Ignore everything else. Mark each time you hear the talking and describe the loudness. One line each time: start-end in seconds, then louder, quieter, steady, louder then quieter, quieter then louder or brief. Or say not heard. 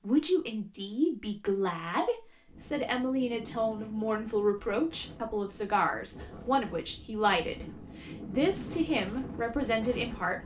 0.0-10.4 steady.